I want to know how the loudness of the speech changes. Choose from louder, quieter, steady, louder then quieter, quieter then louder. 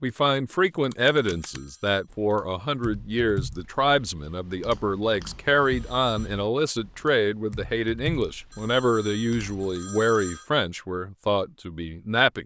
steady.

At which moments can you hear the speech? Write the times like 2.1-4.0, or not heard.
0.0-12.4.